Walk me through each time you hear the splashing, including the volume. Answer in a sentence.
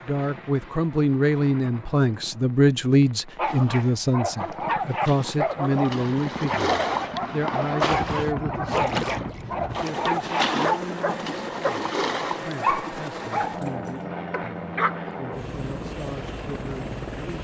You can hear the splashing from 3.5 to 12.6 s, getting louder.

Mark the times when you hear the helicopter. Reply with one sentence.
The helicopter can be heard from 0.0 to 17.3 s.